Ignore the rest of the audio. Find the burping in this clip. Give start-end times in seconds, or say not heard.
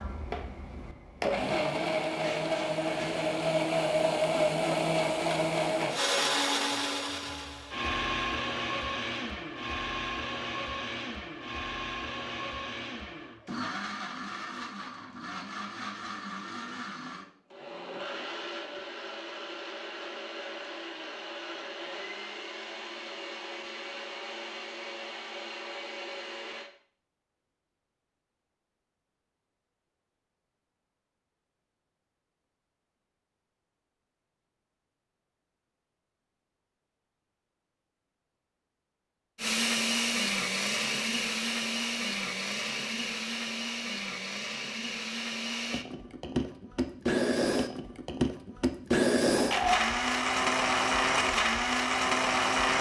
2.2-3.3, 49.3-49.9.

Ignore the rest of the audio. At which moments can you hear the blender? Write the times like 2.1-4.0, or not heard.
0.0-26.7, 39.4-52.7.